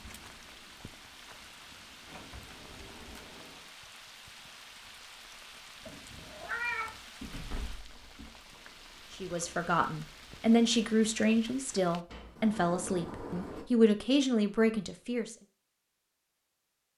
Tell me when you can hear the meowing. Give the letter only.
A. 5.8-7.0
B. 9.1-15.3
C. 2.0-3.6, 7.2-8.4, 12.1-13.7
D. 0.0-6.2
A.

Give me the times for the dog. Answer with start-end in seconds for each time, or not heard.
not heard.